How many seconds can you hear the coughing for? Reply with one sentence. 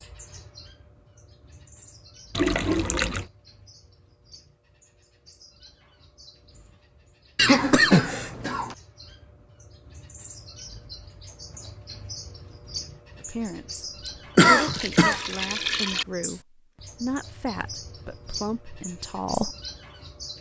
You can hear the coughing for 3 seconds altogether.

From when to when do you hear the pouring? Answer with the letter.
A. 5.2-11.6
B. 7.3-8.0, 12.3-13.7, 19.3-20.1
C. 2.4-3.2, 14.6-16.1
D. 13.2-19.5
C.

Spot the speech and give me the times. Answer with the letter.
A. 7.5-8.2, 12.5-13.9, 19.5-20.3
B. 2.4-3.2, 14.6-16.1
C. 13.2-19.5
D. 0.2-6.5
C.